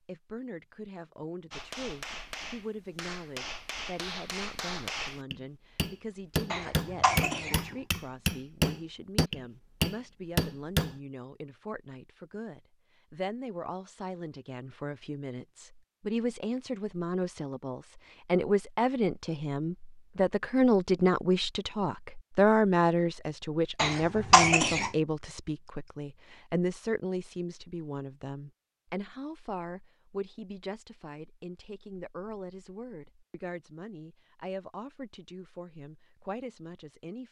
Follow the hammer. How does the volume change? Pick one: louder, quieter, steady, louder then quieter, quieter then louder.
louder.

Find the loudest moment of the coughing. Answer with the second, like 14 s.
24 s.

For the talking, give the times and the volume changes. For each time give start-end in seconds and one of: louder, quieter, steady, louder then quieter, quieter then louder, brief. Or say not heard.
0.1-37.2 louder then quieter.